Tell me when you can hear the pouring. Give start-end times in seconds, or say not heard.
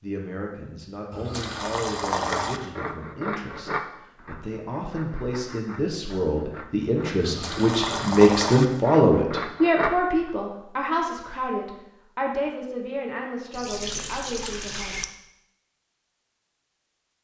1.1-2.6, 7.2-8.7, 13.5-15.1.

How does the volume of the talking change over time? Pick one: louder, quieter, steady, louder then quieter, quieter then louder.
louder then quieter.